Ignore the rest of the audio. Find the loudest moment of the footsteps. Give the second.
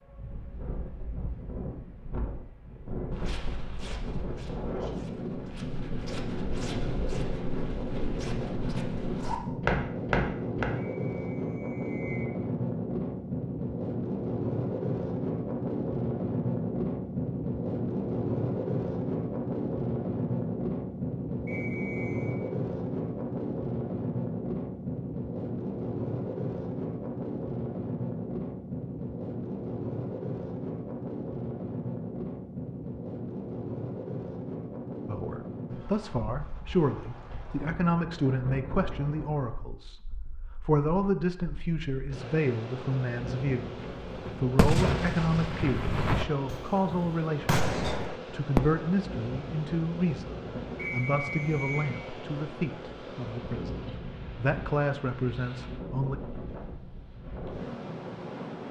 10 s.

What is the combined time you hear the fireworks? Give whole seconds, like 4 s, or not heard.
5 s.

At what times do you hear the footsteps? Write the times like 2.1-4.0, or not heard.
3.1-10.7.